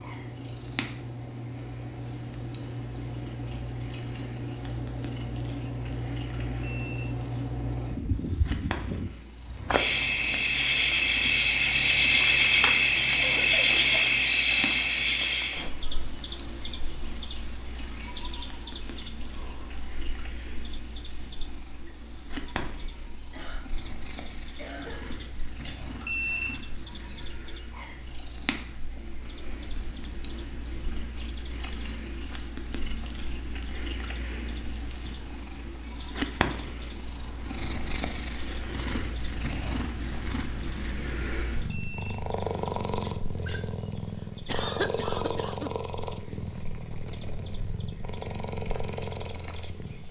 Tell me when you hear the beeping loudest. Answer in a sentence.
The volume of the beeping peaks at 26 seconds.